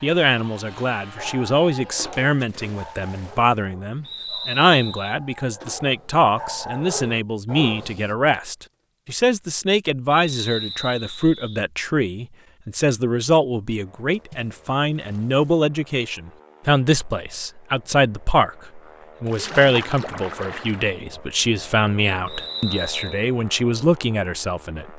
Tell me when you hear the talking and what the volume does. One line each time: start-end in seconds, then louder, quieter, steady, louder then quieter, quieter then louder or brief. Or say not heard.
0.0-24.9 steady.